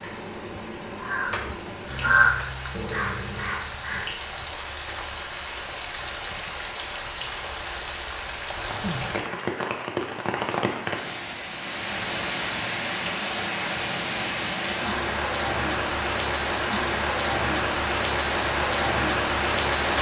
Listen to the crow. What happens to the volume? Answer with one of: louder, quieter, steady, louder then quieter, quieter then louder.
louder then quieter.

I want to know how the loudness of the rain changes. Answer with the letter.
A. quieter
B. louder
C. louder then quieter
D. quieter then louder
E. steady
B.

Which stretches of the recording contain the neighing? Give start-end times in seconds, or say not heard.
not heard.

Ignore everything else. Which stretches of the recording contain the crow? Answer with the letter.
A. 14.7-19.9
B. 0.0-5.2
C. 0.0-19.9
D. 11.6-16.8
B.